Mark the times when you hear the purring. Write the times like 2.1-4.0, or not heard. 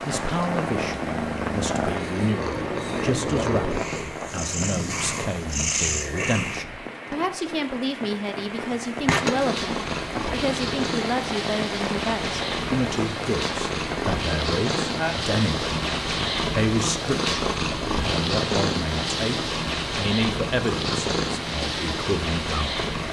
0.0-6.7, 8.8-23.0.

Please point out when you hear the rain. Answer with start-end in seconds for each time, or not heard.
0.0-23.0.